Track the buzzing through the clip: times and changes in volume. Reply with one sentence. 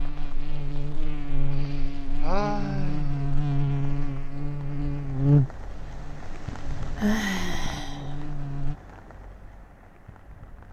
The buzzing can be heard from 0.0 to 8.8 s, getting louder then quieter.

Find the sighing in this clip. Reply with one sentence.
The sighing can be heard from 1.6 to 3.3 s and from 6.5 to 8.2 s.